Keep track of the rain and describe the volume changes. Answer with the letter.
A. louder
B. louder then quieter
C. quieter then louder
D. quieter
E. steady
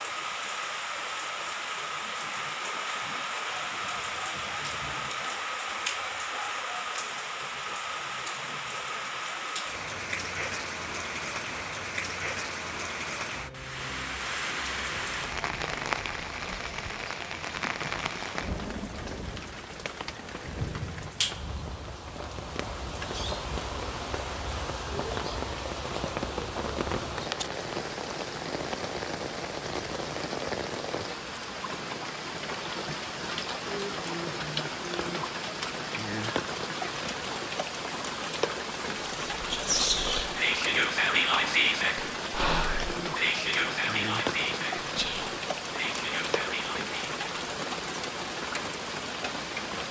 E.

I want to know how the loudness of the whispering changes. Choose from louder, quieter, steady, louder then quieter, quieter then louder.
quieter.